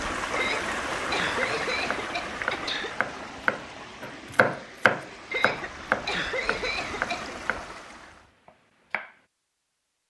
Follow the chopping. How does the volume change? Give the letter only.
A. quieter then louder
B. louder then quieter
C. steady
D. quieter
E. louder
D.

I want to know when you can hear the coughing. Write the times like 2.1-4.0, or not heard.
0.3-3.0, 5.3-7.5.